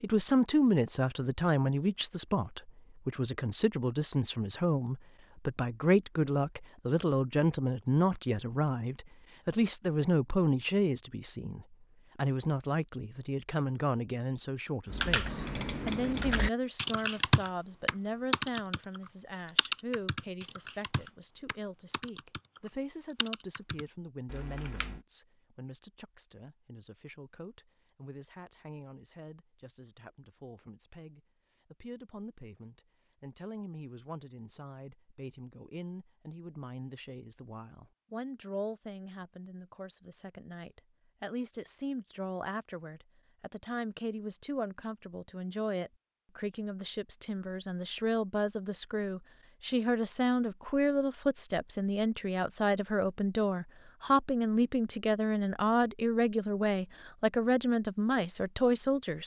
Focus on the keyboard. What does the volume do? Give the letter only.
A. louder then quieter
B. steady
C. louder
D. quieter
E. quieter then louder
A.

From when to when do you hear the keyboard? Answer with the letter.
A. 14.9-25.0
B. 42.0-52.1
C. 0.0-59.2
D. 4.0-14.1
A.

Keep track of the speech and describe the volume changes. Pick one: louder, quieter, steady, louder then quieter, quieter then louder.
quieter then louder.